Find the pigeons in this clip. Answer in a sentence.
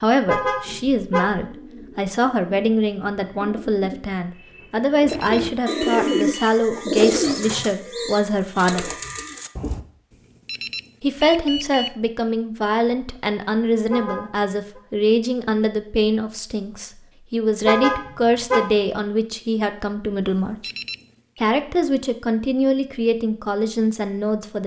You can hear the pigeons from 0.7 to 9.8 s.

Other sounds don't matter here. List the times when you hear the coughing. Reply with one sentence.
You can't hear the coughing here.